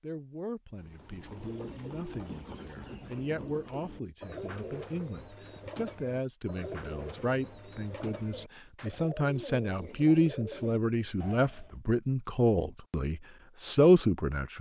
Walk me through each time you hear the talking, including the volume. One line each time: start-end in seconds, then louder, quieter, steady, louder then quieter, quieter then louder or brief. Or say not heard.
0.0-14.5 louder.